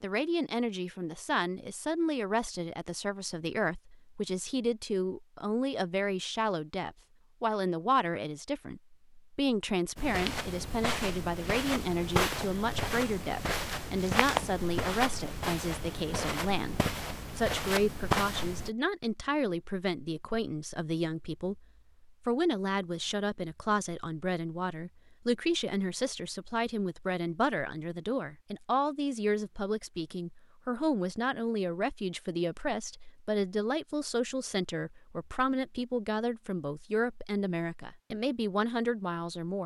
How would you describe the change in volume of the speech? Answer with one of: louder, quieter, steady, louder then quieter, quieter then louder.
steady.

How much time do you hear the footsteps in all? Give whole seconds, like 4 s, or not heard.
9 s.